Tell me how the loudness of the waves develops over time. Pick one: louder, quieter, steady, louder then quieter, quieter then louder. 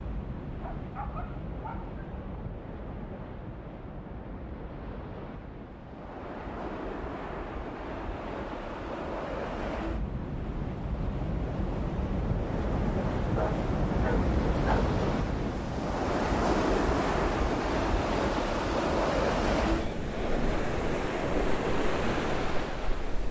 louder.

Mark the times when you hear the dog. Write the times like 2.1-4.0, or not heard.
0.6-2.4, 13.2-14.8.